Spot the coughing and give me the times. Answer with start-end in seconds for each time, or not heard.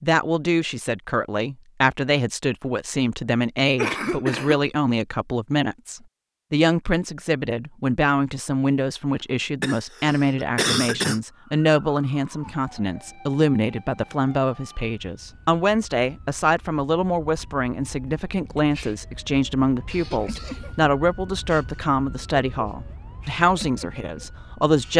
3.8-4.6, 9.6-11.2, 19.9-20.7.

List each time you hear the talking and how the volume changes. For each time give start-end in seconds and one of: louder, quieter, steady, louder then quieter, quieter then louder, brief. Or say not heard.
0.0-24.9 steady.